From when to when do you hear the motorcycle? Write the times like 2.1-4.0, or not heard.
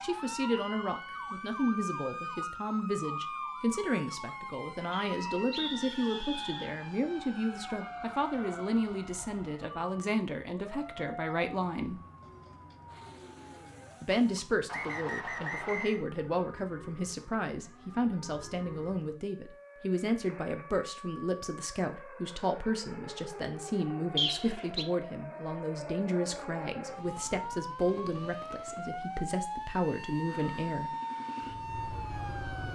30.2-32.7.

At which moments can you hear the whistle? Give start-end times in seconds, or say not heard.
4.9-6.8, 14.7-16.0, 24.1-24.9.